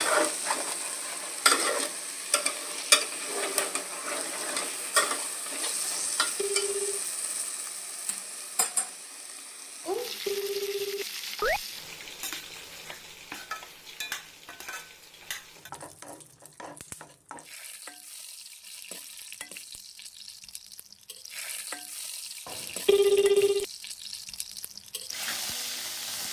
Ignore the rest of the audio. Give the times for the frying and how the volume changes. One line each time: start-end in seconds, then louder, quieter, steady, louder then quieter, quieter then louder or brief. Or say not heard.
0.0-26.2 quieter then louder.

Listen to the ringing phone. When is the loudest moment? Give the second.
23 s.